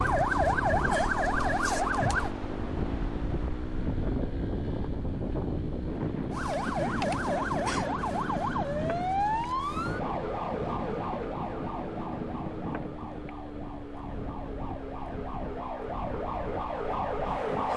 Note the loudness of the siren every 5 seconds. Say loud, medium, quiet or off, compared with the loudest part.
loud, loud, medium, medium.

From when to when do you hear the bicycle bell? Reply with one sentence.
You can't hear the bicycle bell here.